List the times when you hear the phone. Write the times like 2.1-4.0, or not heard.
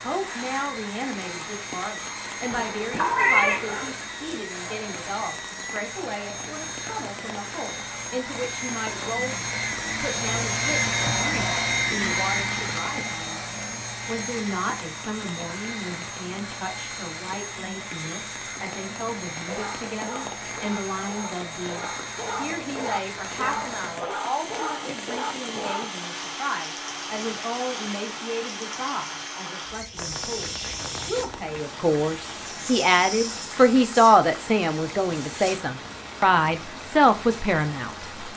not heard.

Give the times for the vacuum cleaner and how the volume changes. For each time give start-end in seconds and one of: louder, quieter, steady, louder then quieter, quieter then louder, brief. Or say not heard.
0.0-35.6 louder then quieter.